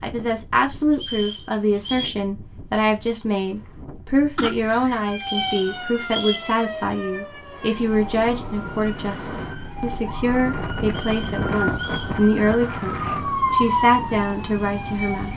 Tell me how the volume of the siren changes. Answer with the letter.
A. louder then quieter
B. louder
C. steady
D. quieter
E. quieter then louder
E.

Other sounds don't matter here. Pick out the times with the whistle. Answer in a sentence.
The whistle can be heard from 0.9 to 2.1 s, from 5.2 to 6.5 s and from 10.8 to 12.2 s.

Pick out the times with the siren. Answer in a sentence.
You can hear the siren from 4.8 to 15.3 s.